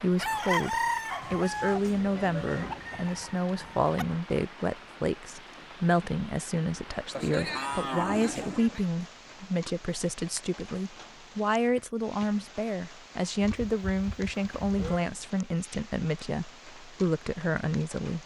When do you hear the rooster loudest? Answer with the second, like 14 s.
1 s.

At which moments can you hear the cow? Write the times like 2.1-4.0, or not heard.
1.2-3.0, 7.1-8.8, 13.4-15.1.